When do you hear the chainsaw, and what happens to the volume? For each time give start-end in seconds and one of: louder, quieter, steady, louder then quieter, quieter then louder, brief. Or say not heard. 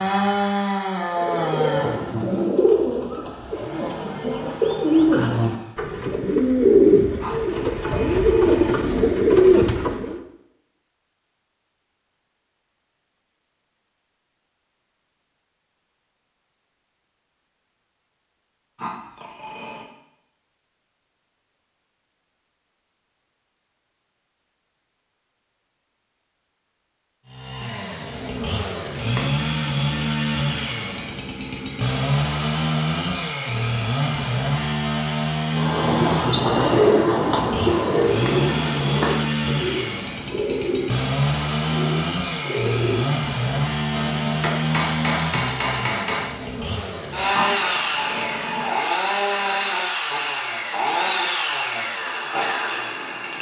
0.0-5.9 quieter then louder
27.2-53.3 steady.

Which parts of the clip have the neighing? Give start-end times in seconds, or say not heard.
not heard.